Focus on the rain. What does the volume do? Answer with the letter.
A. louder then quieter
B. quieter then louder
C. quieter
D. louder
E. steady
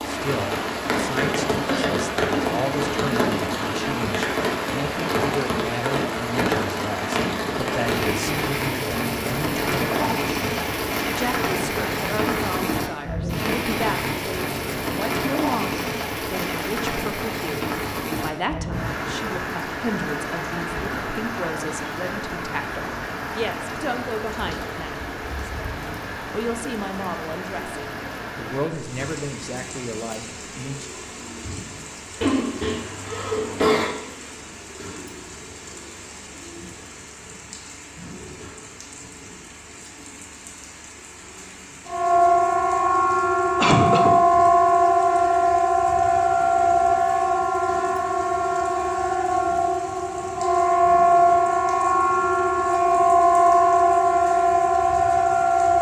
C.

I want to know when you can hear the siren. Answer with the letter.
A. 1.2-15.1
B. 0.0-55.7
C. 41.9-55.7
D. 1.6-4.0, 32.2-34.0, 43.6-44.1
C.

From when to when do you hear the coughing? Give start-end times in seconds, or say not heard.
1.6-4.0, 32.2-34.0, 43.6-44.1.